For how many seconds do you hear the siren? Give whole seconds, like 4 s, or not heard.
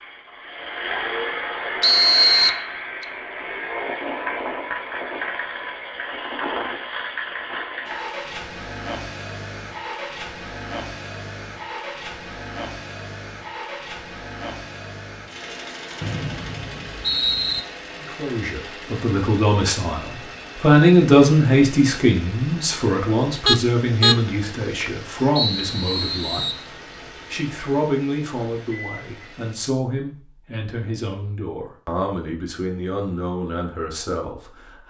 not heard.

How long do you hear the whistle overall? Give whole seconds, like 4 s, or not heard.
4 s.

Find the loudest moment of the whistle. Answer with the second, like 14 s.
2 s.